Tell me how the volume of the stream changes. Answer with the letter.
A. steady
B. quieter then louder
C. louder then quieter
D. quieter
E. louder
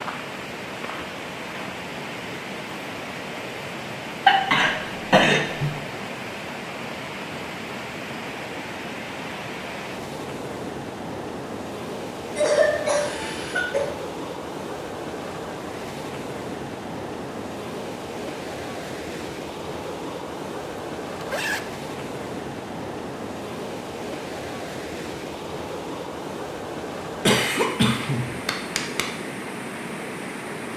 A.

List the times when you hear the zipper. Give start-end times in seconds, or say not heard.
21.2-21.6.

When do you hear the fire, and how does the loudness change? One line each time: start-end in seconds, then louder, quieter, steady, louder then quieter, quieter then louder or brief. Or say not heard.
not heard.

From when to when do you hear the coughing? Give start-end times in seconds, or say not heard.
4.2-5.7, 12.3-13.9, 27.2-29.1.